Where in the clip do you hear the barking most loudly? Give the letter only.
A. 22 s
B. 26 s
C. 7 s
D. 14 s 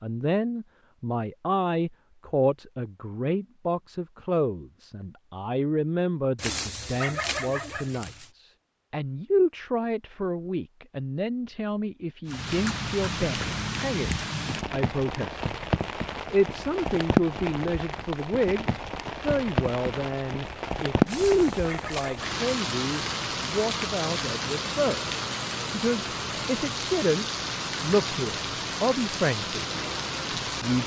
C.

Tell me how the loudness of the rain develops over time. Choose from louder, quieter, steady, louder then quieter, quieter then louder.
steady.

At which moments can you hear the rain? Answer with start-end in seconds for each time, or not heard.
12.2-30.8.